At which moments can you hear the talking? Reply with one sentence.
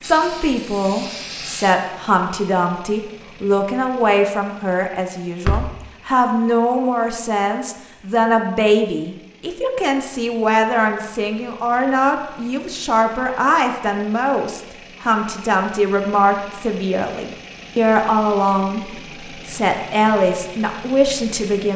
You can hear the talking from 0.0 to 21.7 s.